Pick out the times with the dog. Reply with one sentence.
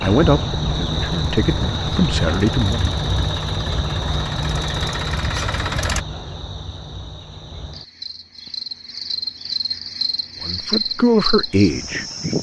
The dog can't be heard in this clip.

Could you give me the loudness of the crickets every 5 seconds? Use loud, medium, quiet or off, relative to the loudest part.
loud, medium, loud.